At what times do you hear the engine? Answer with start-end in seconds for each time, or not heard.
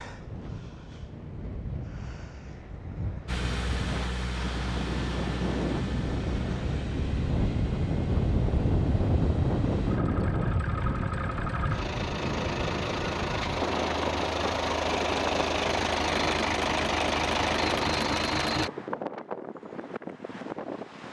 3.2-18.7.